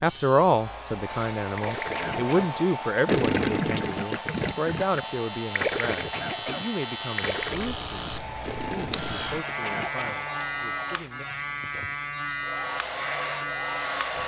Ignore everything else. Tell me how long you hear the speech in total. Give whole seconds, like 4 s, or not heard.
11 s.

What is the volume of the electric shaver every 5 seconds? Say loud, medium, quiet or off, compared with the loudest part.
medium, loud, loud.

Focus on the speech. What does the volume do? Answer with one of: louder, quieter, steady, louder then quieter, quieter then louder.
quieter.